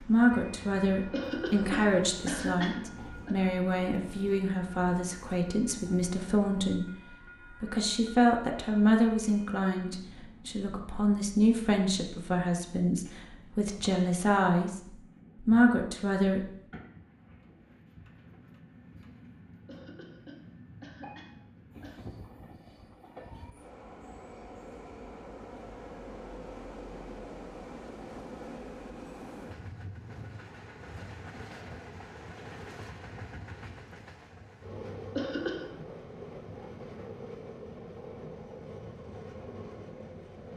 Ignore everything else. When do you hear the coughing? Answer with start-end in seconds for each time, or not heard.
1.1-3.4, 19.6-22.0, 35.1-35.8.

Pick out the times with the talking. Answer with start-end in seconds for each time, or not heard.
0.0-16.4.